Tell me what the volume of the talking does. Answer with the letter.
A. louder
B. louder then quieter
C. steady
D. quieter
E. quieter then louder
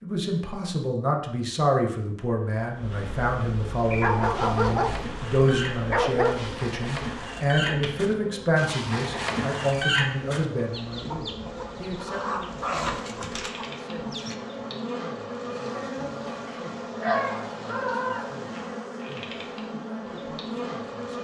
D.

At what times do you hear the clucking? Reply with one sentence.
You can hear the clucking from 3.8 to 14.3 s.